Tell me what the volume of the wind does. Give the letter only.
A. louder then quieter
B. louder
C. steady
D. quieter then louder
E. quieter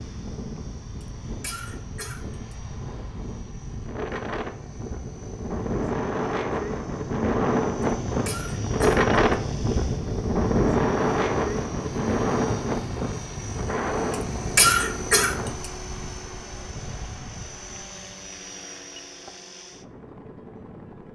A.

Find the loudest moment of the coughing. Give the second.
15 s.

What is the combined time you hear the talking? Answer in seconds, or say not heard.
not heard.